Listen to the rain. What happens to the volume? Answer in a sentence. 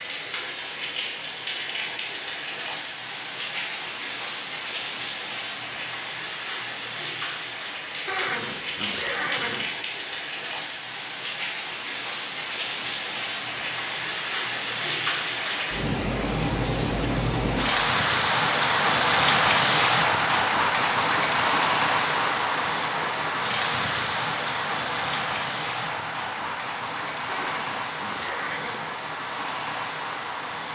The loudness of the rain goes up, then down.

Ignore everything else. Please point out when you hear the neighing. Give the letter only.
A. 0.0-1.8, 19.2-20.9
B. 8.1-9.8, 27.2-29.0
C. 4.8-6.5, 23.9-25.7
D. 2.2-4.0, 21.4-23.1
B.